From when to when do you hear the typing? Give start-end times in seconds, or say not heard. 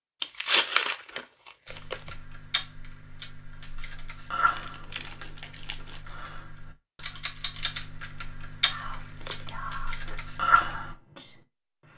1.6-10.9.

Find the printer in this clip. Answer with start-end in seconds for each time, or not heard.
not heard.